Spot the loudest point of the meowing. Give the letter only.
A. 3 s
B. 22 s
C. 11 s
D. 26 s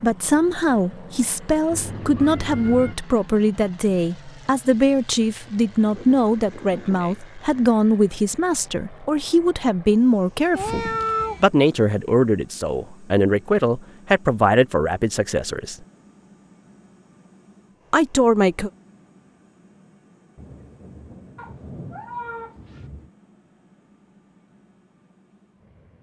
C.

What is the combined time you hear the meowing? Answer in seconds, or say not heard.
4 s.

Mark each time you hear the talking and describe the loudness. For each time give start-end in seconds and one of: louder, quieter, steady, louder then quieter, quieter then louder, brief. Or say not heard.
0.0-15.8 steady
17.9-18.7 brief.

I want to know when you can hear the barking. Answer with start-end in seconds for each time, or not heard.
not heard.